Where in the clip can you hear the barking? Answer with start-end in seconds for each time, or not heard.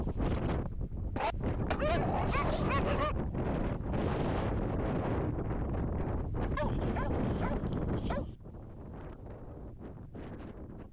1.1-3.1, 6.5-8.2.